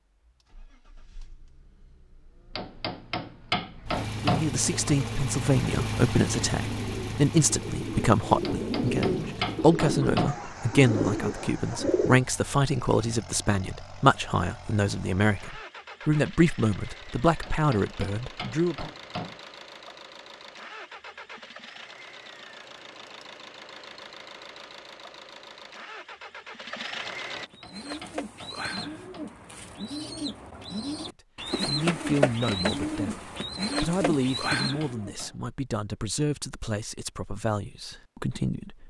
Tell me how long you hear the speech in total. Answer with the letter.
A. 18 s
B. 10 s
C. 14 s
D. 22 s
D.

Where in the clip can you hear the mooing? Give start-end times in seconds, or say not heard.
not heard.